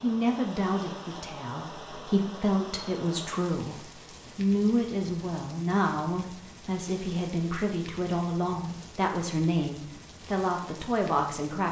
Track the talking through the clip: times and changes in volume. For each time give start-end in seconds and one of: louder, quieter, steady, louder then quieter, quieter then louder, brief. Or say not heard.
0.0-11.6 steady.